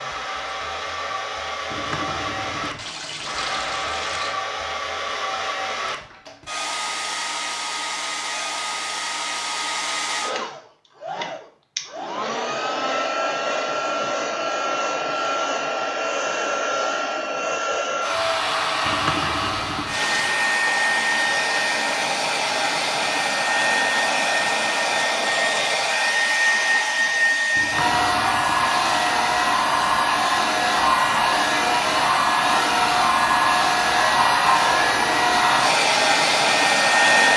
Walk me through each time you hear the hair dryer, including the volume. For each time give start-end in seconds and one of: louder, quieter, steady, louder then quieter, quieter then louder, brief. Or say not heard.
0.0-37.3 louder.